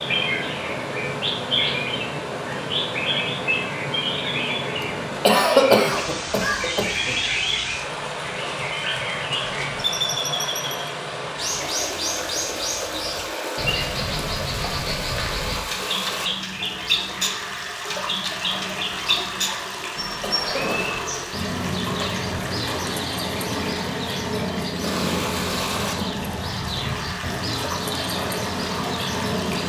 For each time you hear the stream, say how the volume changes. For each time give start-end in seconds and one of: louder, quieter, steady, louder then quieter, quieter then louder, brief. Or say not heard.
0.0-29.6 steady.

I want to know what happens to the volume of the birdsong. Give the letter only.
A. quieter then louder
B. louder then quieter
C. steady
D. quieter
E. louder
C.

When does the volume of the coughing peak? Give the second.
6 s.